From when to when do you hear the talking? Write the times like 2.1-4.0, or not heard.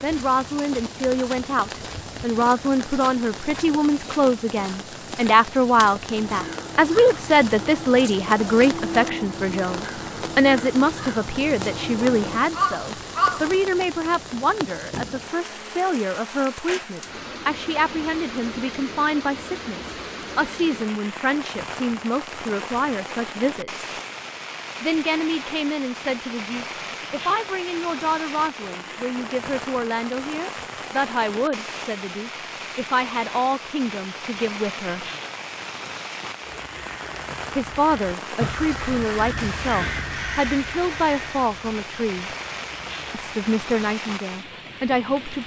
0.0-23.9, 24.8-35.0, 37.5-42.4, 43.1-45.4.